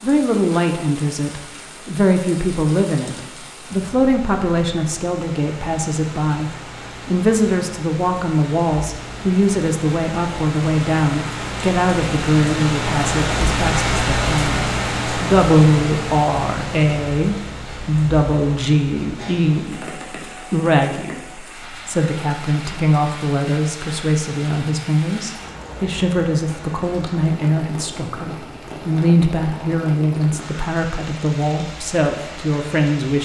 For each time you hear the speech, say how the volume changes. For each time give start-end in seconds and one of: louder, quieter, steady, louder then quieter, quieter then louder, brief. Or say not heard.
0.0-33.1 steady.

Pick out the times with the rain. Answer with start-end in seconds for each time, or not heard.
0.0-33.1.